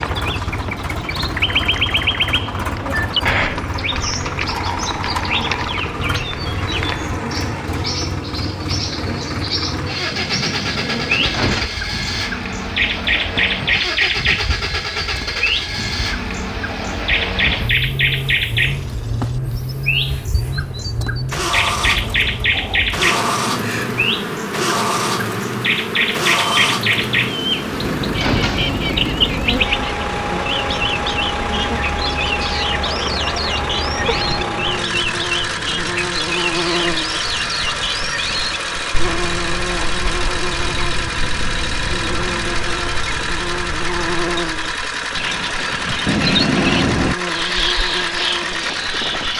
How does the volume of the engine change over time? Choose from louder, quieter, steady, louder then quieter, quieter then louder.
steady.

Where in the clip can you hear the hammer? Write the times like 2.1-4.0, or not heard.
not heard.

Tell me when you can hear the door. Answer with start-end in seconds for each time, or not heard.
10.1-11.7, 26.9-28.9, 46.0-47.1.